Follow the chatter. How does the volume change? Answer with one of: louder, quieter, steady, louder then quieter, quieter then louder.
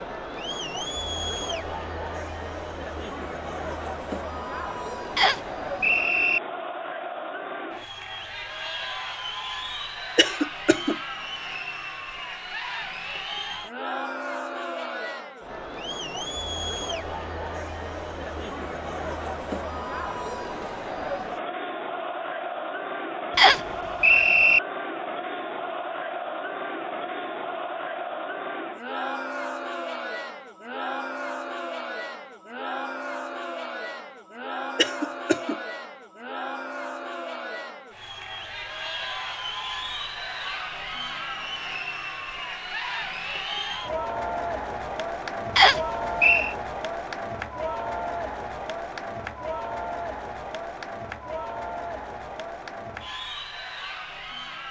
steady.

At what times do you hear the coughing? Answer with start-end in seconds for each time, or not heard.
10.2-10.9, 34.8-35.6.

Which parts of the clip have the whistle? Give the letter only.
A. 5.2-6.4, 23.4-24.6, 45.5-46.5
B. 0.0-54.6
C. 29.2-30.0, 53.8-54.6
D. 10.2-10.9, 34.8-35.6
A.